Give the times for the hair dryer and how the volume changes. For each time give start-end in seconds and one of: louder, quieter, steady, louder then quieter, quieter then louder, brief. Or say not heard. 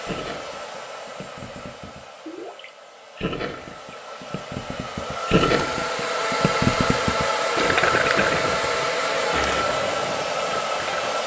0.0-11.2 louder.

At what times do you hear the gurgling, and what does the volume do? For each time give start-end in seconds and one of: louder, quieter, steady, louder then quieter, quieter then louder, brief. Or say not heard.
0.1-11.1 louder then quieter.